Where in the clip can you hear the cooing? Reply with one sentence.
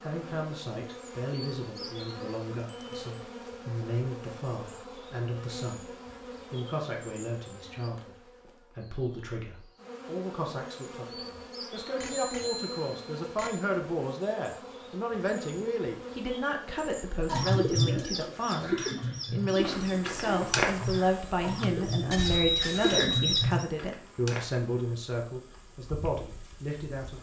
You can hear the cooing from 17.2 to 23.6 s.